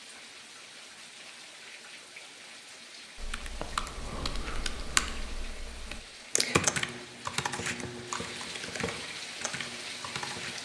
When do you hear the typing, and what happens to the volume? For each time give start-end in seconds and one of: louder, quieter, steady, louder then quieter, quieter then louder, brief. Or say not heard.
3.1-10.5 louder then quieter.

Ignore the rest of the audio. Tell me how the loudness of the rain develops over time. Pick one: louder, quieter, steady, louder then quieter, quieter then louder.
louder.